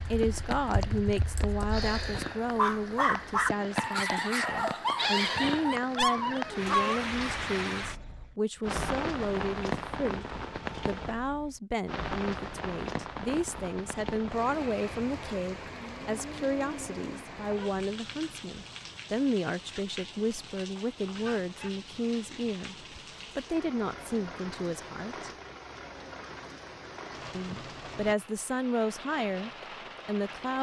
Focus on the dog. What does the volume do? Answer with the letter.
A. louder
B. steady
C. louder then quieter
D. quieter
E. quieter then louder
B.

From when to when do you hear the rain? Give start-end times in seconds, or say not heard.
0.0-30.5.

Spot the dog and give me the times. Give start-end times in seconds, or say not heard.
1.8-7.5.